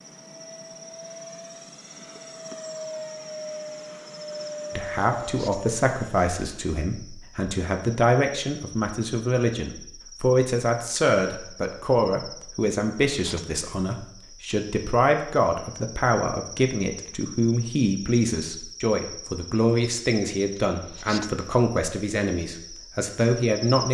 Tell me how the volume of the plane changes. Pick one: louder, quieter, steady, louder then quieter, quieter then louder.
louder.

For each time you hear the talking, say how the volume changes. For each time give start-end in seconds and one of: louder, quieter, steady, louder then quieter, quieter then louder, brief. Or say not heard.
4.8-23.8 steady.